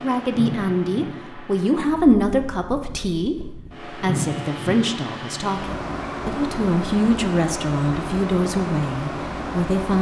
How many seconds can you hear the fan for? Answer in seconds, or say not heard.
10 s.